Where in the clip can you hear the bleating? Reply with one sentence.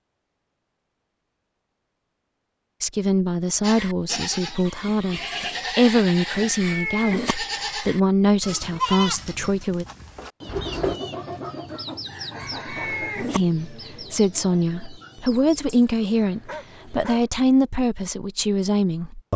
The bleating can be heard from 3.6 to 10.9 s.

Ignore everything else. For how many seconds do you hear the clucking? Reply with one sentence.
You can hear the clucking for 7 seconds altogether.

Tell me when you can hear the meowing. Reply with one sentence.
The meowing can be heard from 6.3 to 7.3 s and from 12.4 to 13.4 s.